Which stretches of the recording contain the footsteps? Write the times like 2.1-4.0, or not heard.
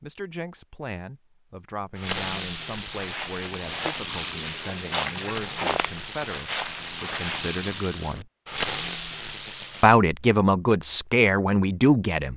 2.9-7.5.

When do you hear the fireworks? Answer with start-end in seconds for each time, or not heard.
1.9-9.9.